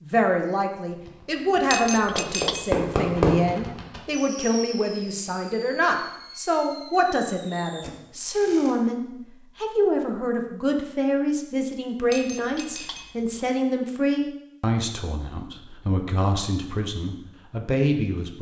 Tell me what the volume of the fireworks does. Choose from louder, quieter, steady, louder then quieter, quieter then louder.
louder then quieter.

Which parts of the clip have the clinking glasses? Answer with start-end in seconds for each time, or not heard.
1.7-2.9, 12.1-13.4.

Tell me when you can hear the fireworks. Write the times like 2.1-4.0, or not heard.
0.8-8.8.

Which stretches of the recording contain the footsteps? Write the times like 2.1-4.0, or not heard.
not heard.